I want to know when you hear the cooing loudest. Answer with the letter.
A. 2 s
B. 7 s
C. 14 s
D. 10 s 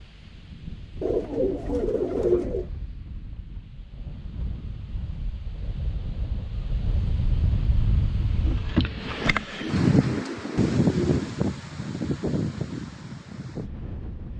A.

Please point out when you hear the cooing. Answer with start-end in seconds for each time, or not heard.
1.0-2.6, 9.6-11.4.